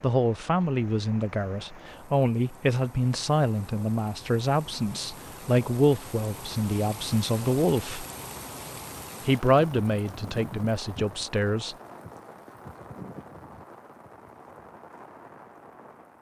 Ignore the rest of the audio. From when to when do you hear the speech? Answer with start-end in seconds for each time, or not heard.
0.0-8.1, 9.2-11.8.